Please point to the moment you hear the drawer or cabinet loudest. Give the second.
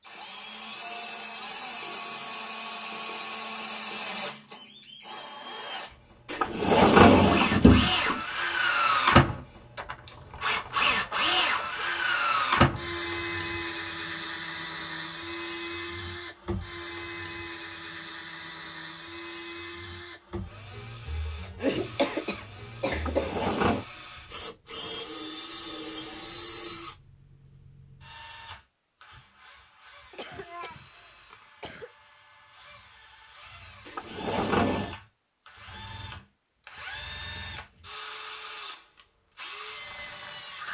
7 s.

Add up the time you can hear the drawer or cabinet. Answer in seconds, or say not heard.
4 s.